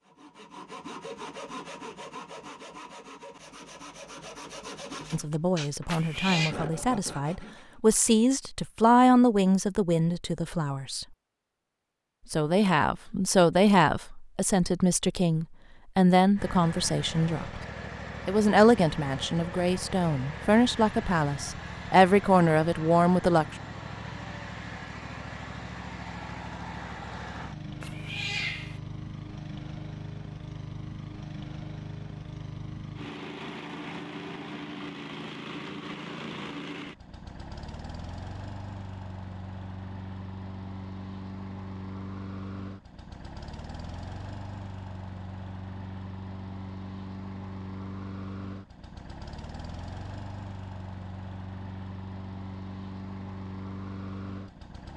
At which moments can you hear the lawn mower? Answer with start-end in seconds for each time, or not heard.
16.4-54.9.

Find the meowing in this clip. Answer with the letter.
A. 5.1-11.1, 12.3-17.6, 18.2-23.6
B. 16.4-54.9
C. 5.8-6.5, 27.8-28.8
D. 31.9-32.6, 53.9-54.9
C.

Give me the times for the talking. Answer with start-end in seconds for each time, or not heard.
5.1-11.1, 12.3-17.6, 18.2-23.6.